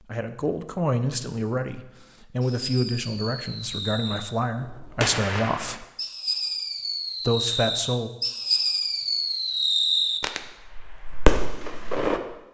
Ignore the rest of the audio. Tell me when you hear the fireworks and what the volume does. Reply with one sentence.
You can hear the fireworks from 2.4 to 12.2 s, getting louder.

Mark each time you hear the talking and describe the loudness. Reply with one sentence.
You can hear the talking from 0.1 to 5.8 s, at a steady volume; and briefly from 7.2 to 8.1 s.